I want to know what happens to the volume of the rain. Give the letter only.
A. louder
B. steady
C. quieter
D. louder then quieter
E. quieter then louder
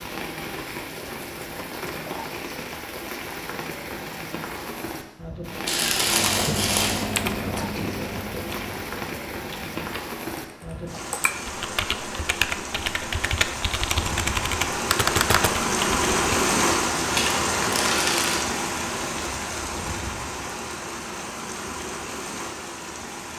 D.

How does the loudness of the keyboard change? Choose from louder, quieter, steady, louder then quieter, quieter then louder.
quieter then louder.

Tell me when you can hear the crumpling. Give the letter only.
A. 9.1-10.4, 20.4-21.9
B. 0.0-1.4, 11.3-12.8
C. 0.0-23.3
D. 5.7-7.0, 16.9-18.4
D.